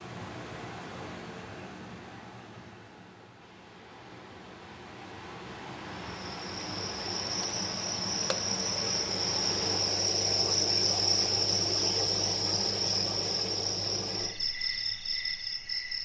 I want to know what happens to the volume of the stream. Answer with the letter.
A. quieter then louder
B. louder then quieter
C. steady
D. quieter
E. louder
A.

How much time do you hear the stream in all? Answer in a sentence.
The stream can be heard for 10 seconds in total.